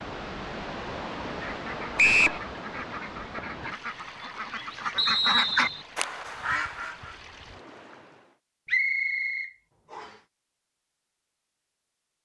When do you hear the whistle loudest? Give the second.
2 s.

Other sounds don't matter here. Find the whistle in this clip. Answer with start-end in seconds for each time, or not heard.
1.9-2.4, 5.0-5.8, 8.7-10.1.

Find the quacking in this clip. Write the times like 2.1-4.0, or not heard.
1.3-7.2.